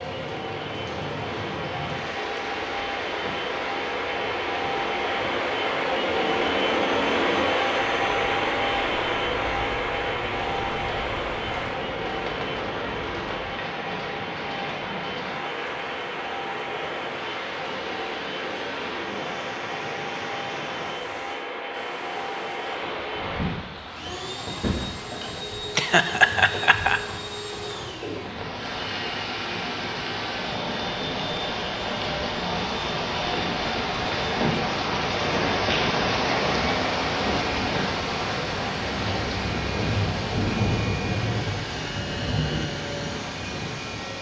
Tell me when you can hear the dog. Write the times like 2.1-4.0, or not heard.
not heard.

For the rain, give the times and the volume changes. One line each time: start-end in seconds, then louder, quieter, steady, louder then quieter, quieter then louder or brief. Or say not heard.
0.0-44.1 louder.